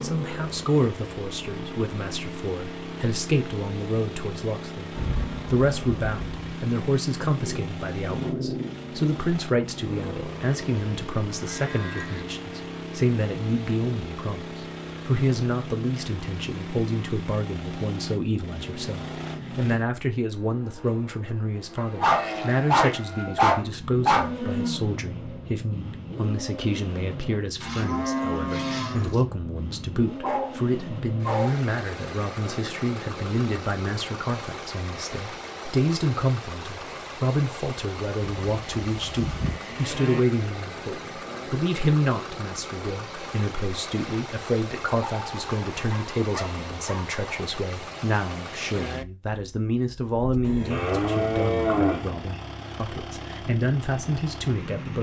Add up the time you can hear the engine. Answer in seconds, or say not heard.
55 s.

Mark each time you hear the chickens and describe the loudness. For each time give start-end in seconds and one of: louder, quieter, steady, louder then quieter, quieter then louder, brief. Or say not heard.
not heard.